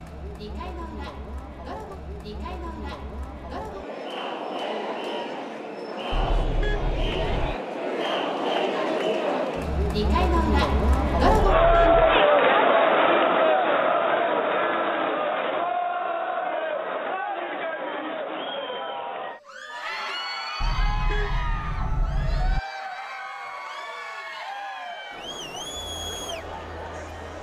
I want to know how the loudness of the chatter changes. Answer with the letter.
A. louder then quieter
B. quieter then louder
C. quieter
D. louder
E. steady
A.